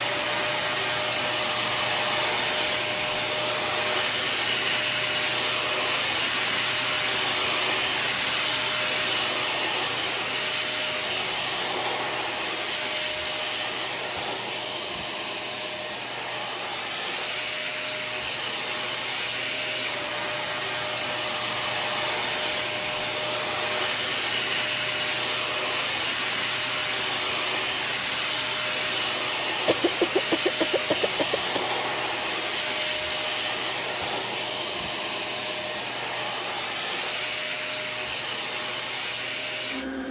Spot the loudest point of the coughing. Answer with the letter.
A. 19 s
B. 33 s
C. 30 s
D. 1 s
C.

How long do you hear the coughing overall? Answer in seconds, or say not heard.
2 s.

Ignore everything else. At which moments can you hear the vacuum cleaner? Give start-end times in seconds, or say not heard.
0.0-40.0.